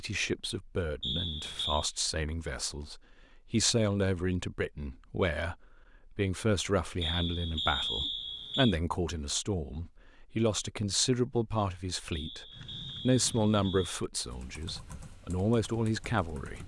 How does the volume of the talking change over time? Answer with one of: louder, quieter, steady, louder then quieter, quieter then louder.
louder.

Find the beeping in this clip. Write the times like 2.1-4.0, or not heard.
1.0-1.9, 7.0-8.8, 12.1-14.1.